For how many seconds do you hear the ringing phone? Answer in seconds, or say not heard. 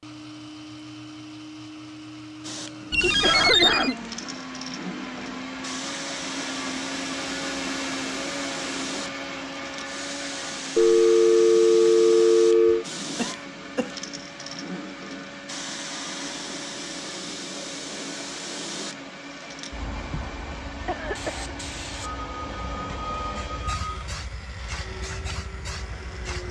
5 s.